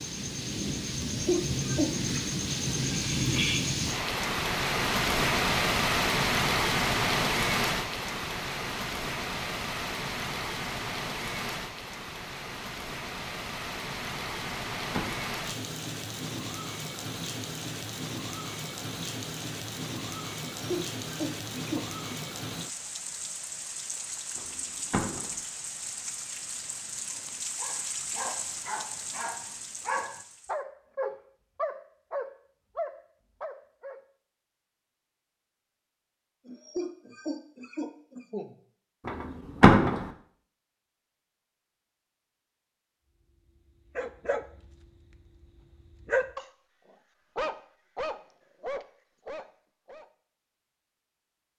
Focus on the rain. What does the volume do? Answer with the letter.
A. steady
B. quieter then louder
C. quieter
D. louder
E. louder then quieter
C.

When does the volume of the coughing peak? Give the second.
1 s.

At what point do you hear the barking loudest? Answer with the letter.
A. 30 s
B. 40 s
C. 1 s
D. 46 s
D.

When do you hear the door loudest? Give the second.
40 s.